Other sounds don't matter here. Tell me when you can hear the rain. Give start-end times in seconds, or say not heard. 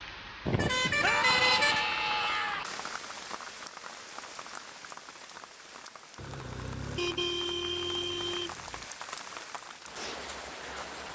0.0-11.1.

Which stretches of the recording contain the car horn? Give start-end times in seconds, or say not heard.
0.5-1.9, 6.2-8.8.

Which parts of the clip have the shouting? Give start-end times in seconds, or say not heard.
1.0-2.6.